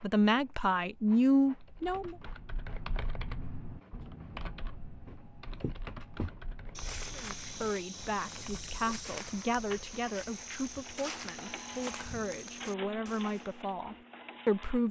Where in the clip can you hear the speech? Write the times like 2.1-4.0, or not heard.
0.0-2.1, 7.1-14.8.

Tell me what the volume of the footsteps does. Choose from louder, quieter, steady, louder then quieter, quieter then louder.
steady.